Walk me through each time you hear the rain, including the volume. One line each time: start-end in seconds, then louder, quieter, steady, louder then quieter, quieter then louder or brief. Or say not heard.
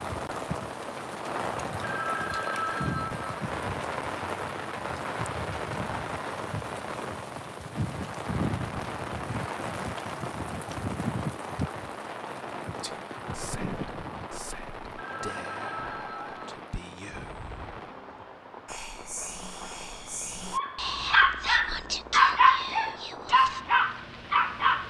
0.0-24.8 quieter.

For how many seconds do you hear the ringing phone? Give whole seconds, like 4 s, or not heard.
3 s.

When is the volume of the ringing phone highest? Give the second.
3 s.